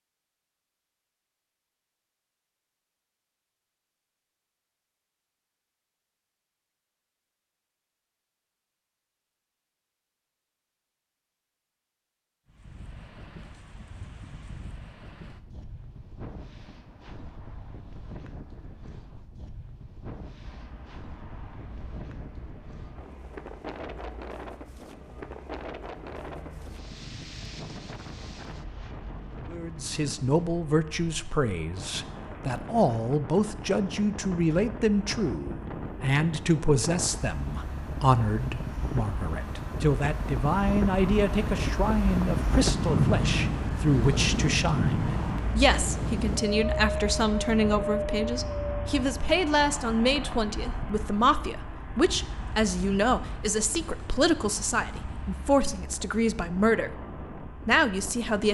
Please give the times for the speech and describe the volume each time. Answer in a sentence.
You can hear the speech from 29.5 to 58.4 s, at a steady volume.